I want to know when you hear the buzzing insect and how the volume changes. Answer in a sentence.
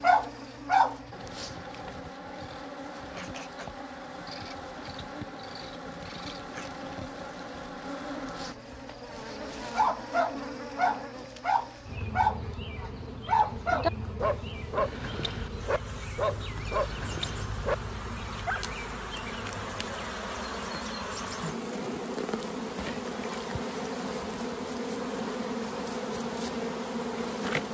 You can hear the buzzing insect from 0.0 to 27.6 s, getting louder.